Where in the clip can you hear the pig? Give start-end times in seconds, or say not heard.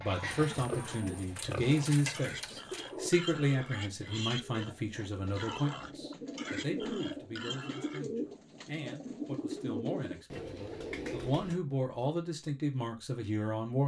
0.0-8.0.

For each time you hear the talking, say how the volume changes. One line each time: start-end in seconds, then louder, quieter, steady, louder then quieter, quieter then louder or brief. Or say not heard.
0.0-13.8 quieter then louder.